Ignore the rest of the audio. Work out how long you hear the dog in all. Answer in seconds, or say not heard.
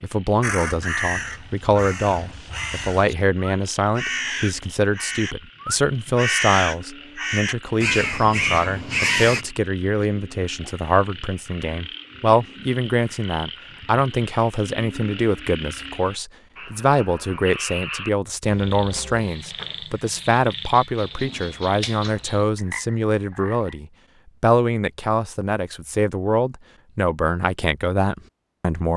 not heard.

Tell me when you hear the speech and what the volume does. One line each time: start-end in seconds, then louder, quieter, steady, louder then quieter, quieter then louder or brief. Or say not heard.
0.0-28.9 steady.